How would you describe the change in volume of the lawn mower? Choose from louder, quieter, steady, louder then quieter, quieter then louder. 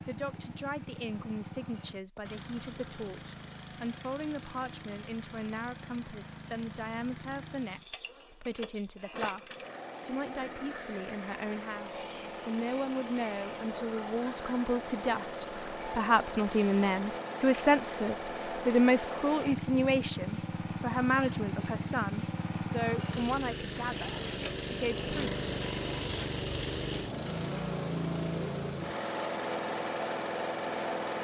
louder.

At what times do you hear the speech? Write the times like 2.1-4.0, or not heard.
0.1-25.4.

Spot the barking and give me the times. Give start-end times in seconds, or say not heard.
not heard.